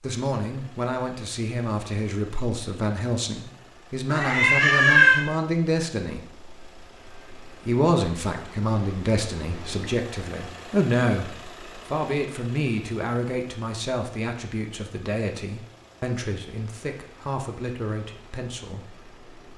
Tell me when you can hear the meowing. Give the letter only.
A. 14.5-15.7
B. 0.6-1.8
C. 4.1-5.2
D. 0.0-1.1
C.